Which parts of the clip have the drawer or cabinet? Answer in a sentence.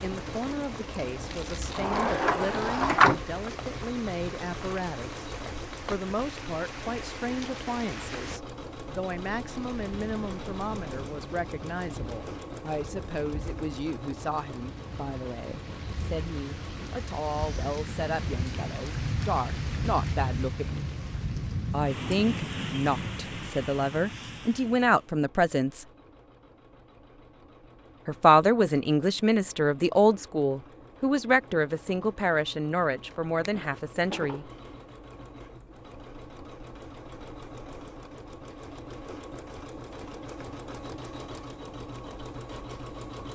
You can hear the drawer or cabinet from 1.8 to 3.2 s and from 33.4 to 34.4 s.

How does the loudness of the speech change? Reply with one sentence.
The volume of the speech goes up.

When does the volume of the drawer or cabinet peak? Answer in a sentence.
The volume of the drawer or cabinet peaks at 3 seconds.